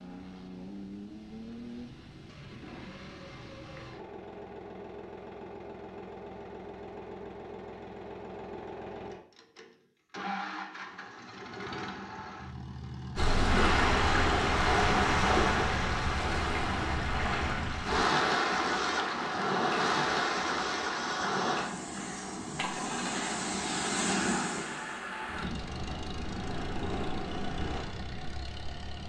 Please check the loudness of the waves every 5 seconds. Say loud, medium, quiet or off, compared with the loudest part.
off, off, loud, loud, medium, quiet.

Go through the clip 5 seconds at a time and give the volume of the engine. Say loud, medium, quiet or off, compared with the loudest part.
medium, medium, loud, loud, loud, medium.